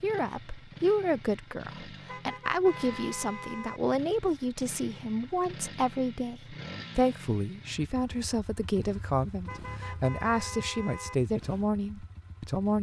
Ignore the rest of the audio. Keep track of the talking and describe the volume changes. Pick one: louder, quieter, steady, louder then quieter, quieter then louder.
steady.